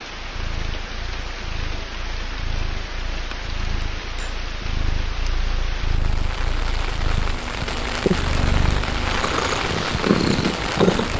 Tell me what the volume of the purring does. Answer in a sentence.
The loudness of the purring goes up.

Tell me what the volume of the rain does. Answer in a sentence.
The volume of the rain goes up.